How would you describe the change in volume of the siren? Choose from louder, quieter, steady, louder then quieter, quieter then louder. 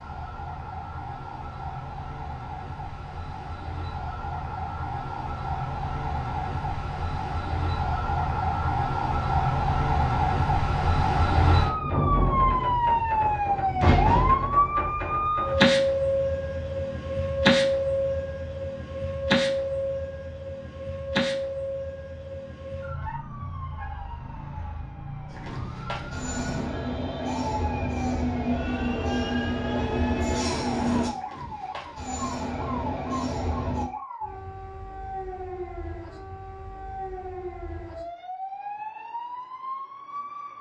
louder then quieter.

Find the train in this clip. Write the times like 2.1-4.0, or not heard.
25.3-33.9.